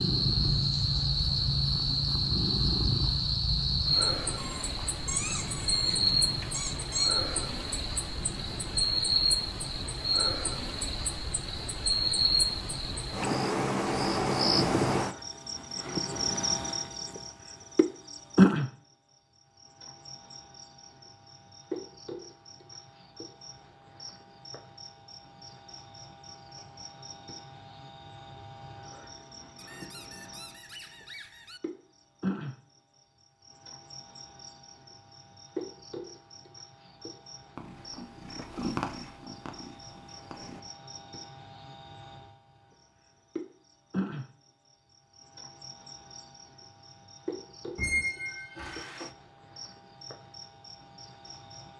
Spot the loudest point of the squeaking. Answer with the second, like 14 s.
48 s.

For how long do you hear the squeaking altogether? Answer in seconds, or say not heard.
6 s.